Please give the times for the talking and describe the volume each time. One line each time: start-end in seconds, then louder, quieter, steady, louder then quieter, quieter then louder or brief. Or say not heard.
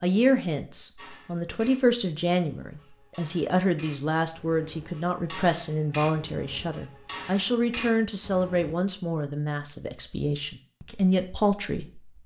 0.0-12.1 steady.